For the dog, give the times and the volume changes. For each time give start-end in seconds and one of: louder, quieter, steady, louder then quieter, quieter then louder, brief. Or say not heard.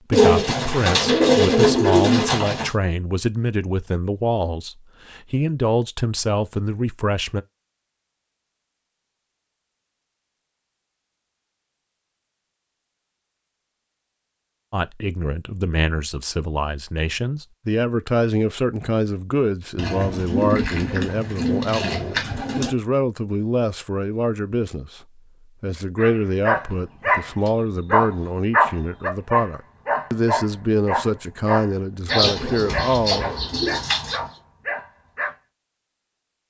25.9-35.4 quieter.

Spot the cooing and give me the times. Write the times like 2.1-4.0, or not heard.
0.1-2.7, 19.8-22.8, 32.0-34.2.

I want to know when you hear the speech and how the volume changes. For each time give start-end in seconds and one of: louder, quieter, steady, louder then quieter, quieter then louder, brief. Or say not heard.
0.1-7.5 steady
14.7-33.3 steady.